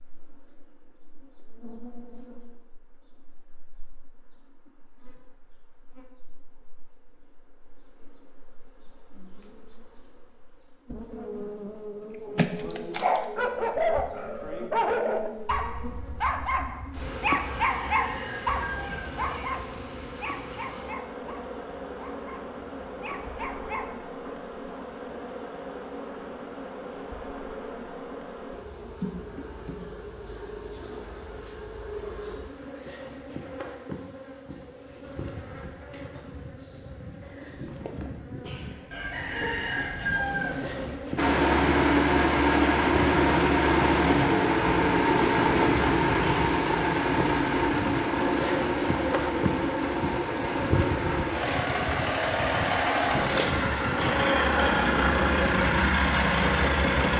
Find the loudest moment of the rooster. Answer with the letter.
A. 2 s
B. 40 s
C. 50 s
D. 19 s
B.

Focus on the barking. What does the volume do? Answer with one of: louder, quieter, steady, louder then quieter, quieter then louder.
quieter.